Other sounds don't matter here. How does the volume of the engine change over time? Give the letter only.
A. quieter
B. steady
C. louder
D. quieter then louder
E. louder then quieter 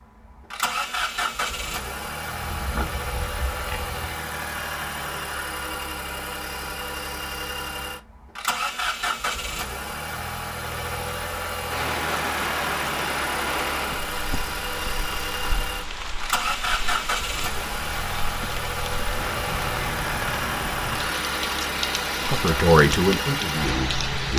B.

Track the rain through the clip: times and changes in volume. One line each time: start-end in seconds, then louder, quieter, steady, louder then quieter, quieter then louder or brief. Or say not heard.
11.7-24.3 quieter then louder.